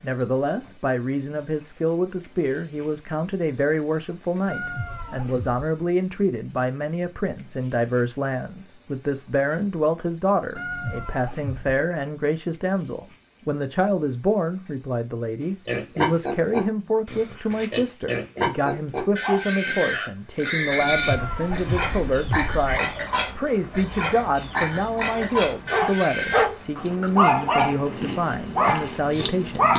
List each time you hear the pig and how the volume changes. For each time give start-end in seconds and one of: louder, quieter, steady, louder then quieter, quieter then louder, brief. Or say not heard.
15.4-26.4 steady.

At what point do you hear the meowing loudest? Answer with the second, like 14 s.
21 s.